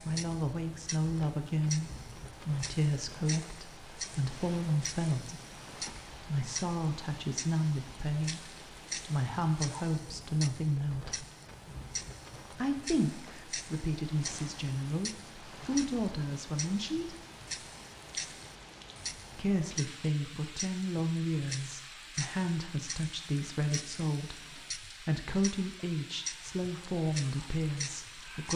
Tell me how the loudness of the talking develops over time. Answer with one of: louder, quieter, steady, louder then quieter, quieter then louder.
steady.